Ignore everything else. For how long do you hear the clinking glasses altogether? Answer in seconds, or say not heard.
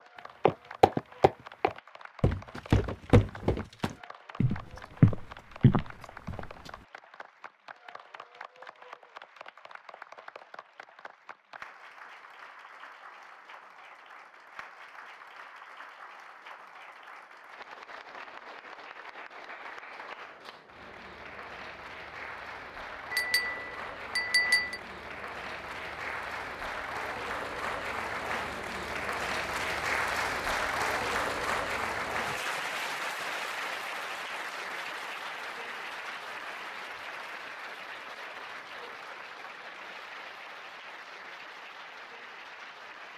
2 s.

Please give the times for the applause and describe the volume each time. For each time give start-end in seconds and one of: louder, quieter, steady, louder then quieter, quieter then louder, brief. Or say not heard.
0.0-43.1 louder then quieter.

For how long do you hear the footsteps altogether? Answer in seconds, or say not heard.
6 s.